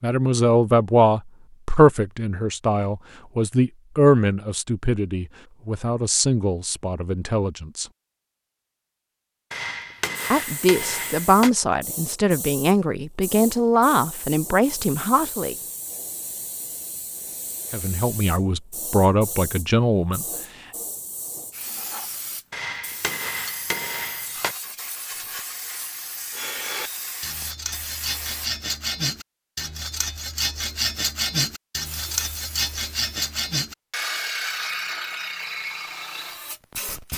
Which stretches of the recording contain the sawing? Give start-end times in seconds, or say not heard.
26.3-36.4.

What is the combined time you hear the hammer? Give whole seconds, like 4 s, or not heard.
4 s.